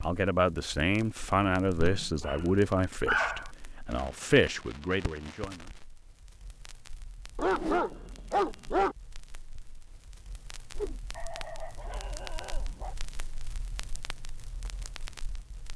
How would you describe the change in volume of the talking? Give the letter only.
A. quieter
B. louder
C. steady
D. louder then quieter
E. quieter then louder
E.